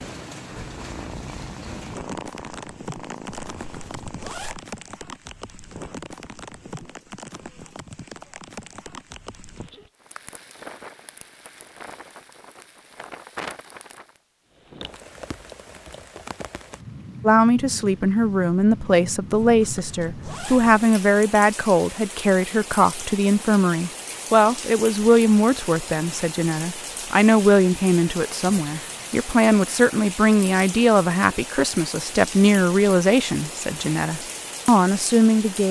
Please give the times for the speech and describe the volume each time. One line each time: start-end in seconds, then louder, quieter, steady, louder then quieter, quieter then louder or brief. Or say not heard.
17.2-35.6 steady.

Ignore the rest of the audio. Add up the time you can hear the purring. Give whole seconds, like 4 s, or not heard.
4 s.